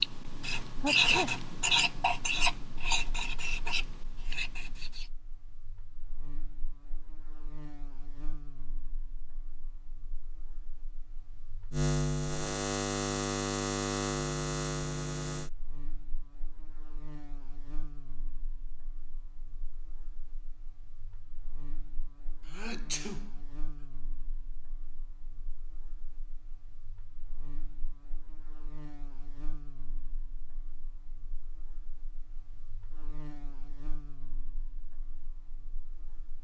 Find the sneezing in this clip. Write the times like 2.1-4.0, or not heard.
0.8-1.3, 22.4-23.3.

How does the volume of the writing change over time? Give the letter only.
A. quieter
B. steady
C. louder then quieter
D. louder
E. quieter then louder
A.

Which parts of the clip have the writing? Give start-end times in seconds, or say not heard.
0.0-5.0.